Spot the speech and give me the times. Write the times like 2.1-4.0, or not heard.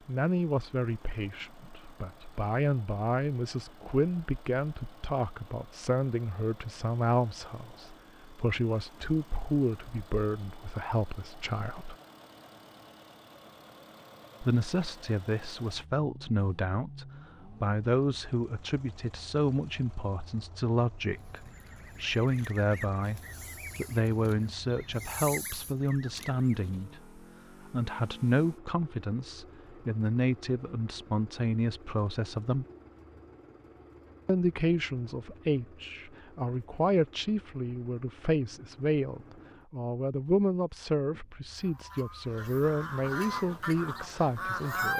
0.1-11.9, 14.4-32.6, 34.2-44.9.